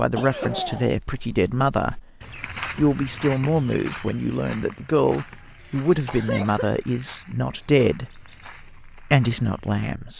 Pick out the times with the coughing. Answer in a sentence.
The coughing can be heard from 0.1 to 0.9 s and from 5.6 to 6.7 s.